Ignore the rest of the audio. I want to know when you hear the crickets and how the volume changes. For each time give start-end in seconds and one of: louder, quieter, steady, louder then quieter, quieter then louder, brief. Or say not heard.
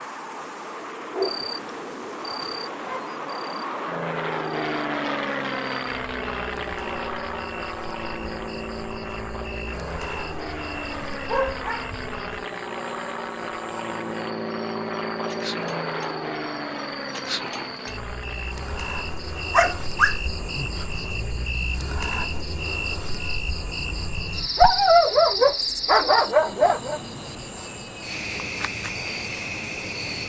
0.0-30.2 louder.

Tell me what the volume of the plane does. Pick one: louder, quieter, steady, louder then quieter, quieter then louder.
quieter.